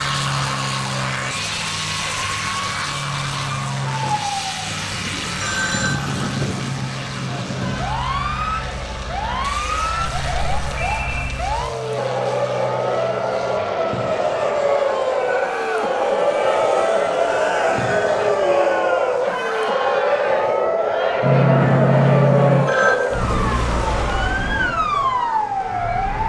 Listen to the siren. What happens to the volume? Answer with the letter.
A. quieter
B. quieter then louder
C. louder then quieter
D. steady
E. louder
E.